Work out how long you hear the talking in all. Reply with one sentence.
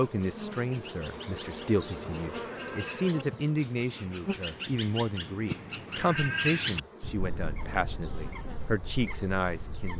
You can hear the talking for 10 seconds altogether.